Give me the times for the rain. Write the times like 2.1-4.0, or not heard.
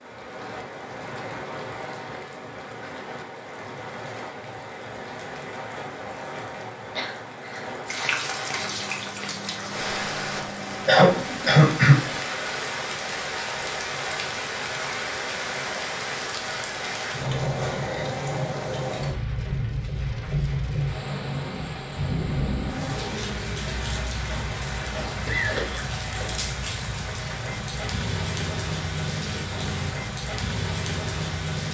0.0-31.6.